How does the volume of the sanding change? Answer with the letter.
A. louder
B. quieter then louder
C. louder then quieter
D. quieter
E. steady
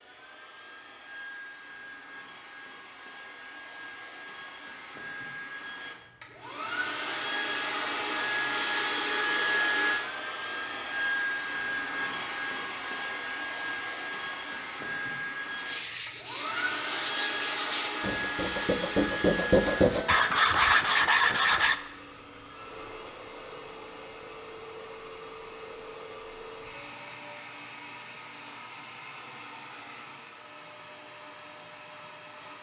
A.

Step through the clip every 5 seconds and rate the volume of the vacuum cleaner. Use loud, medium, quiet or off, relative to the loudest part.
quiet, loud, loud, loud, medium, quiet, quiet.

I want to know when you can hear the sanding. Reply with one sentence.
The sanding can be heard from 15.6 to 21.8 s.